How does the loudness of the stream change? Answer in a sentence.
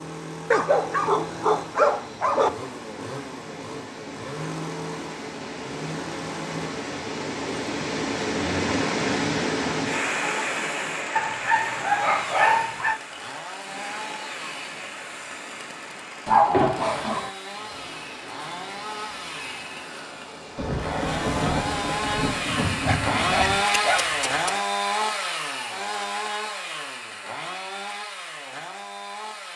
The volume of the stream goes up, then down.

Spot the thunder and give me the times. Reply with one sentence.
The thunder can be heard from 20.6 to 23.6 s.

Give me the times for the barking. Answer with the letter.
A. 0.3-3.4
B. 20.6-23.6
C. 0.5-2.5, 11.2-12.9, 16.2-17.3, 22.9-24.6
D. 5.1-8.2
C.